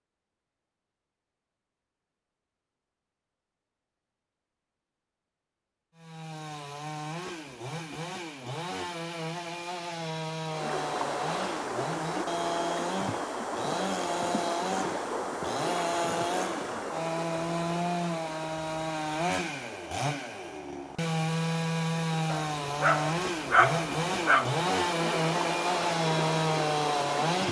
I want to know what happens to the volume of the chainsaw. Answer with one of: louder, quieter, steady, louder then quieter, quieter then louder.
louder.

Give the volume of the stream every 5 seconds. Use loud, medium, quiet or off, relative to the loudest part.
off, off, loud, loud, medium, loud.